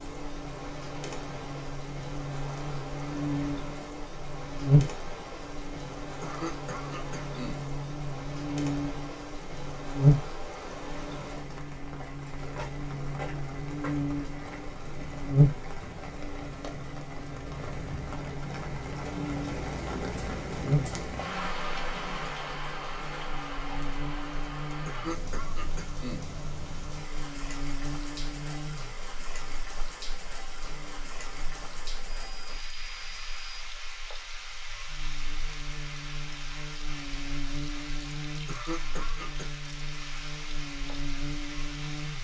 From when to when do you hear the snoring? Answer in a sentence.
The snoring can't be heard in this clip.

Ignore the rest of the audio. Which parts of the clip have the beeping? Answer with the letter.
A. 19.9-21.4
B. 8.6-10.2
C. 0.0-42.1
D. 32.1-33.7
D.